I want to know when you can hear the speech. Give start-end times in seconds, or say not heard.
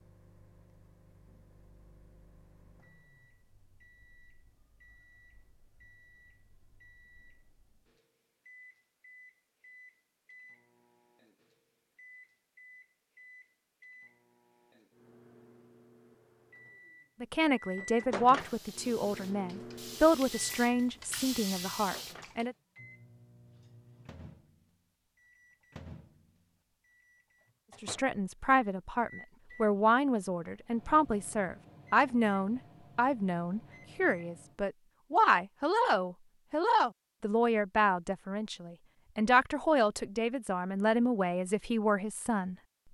17.2-22.6, 27.8-42.5.